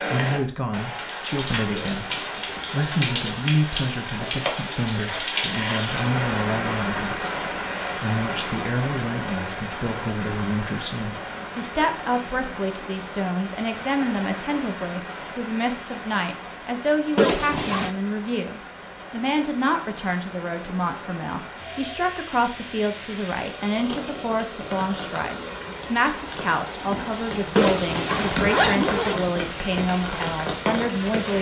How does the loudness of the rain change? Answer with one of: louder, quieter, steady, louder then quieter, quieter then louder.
quieter then louder.